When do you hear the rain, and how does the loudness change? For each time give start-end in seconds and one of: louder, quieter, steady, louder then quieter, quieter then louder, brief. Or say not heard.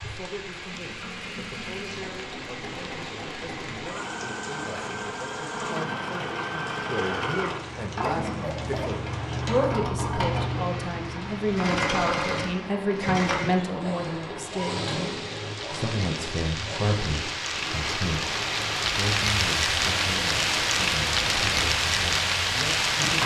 0.0-23.2 louder.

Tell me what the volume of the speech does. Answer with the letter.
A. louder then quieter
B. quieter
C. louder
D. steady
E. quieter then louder
A.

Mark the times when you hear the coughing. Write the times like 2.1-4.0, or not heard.
8.4-9.0.